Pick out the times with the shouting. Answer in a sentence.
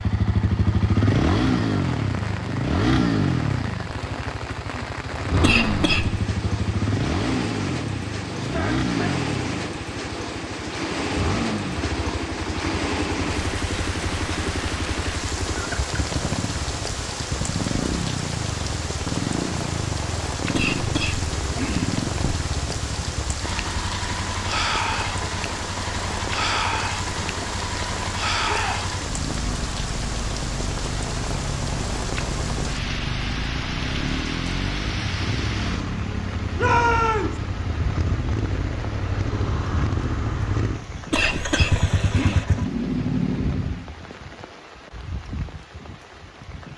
The shouting can be heard from 8.3 to 9.2 s, from 28.4 to 28.8 s and from 36.5 to 37.4 s.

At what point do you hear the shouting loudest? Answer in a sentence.
The volume of the shouting peaks at 37 seconds.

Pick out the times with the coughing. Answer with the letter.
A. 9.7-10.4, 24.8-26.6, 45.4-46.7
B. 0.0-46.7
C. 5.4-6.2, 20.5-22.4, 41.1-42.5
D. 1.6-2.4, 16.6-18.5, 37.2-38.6
C.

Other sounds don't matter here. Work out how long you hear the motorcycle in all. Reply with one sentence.
You can hear the motorcycle for 44 seconds altogether.